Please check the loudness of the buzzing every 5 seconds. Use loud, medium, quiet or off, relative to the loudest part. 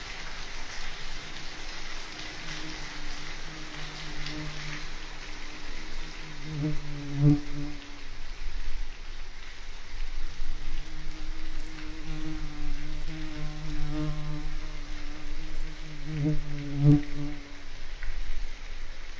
quiet, loud, medium, loud.